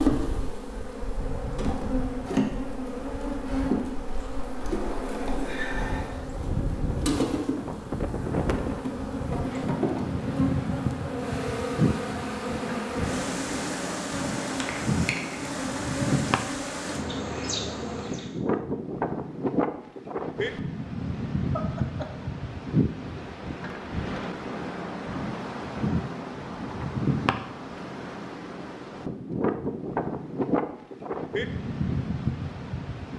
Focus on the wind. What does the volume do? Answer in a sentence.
The loudness of the wind goes up.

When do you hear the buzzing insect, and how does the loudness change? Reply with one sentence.
You can hear the buzzing insect from 0.0 to 18.4 s, at a steady volume.